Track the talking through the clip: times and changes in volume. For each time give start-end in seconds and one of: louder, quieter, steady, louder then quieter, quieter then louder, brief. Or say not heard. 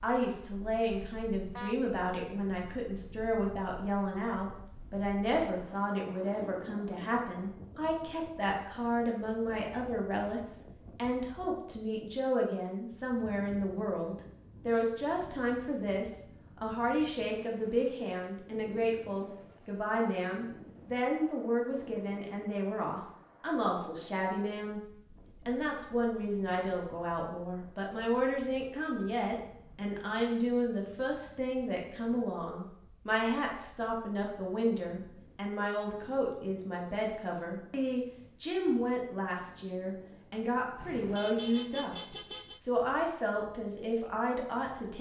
0.0-24.8 steady
25.4-44.9 steady.